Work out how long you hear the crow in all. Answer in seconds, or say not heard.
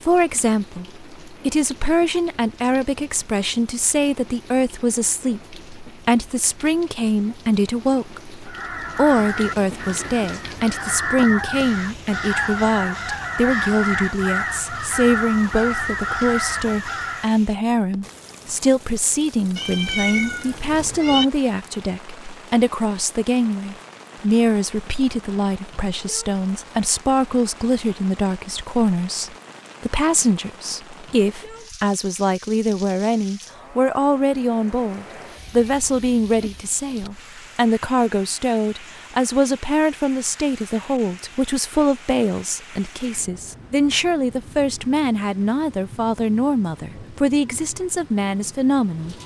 9 s.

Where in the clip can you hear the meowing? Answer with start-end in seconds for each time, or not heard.
19.6-21.2, 35.4-36.6.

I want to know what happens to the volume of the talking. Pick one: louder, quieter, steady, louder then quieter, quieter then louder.
steady.